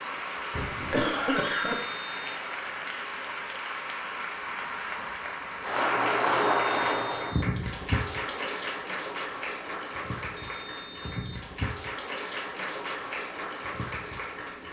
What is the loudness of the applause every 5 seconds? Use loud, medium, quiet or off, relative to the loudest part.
medium, loud, medium.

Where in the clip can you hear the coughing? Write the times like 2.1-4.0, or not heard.
0.5-1.8.